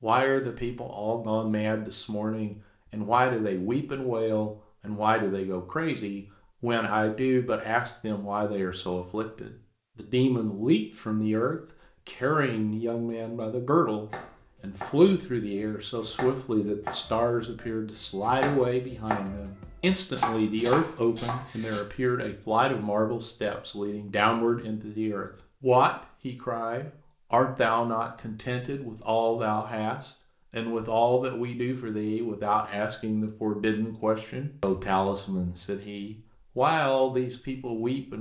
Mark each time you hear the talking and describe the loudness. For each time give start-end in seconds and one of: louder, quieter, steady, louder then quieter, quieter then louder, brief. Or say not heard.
0.0-38.1 steady.